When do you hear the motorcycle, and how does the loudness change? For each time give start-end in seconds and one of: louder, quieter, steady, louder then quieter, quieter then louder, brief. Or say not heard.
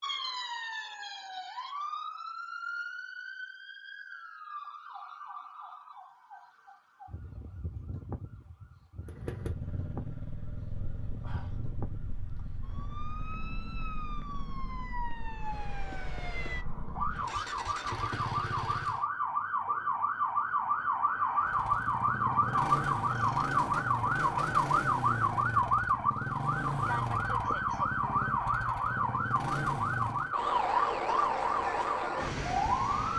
9.1-19.1 quieter then louder
21.4-30.4 steady.